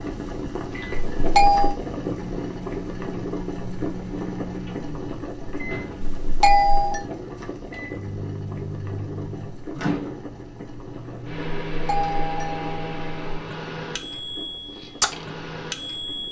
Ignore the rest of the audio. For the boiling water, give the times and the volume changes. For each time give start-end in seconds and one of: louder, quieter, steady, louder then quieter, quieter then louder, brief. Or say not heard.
0.0-16.2 quieter.